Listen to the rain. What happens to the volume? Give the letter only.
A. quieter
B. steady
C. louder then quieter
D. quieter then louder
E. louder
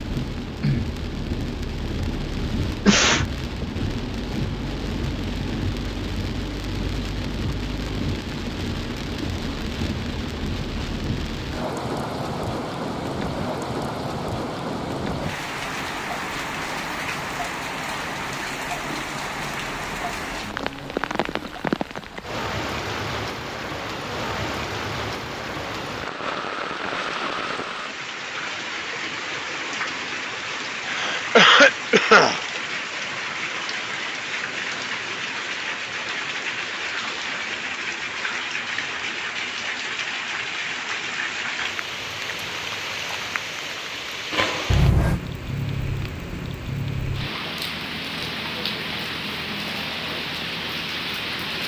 B.